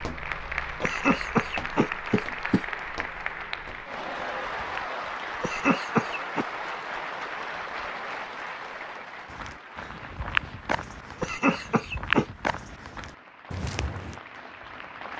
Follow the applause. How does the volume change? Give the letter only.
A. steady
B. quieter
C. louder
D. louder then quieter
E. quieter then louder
B.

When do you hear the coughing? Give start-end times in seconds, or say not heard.
0.8-2.6, 5.4-6.5, 11.2-12.2.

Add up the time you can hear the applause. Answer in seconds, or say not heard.
15 s.